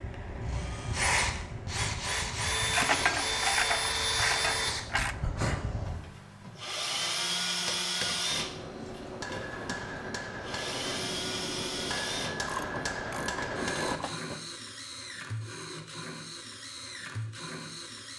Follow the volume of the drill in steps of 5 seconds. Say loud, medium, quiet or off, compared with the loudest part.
loud, loud, medium, medium.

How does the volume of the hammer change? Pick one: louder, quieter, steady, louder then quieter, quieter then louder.
louder.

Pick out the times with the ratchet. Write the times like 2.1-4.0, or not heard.
2.7-5.2, 12.4-14.4.